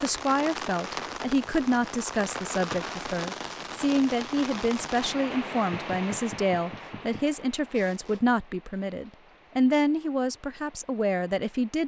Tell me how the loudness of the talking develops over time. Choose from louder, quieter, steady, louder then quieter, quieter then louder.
steady.